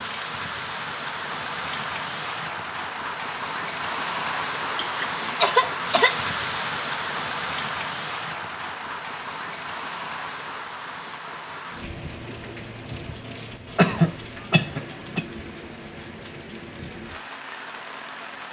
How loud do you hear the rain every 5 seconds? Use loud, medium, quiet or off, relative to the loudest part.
loud, loud, medium, medium.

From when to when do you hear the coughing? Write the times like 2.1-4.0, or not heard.
4.8-6.2, 13.3-15.2.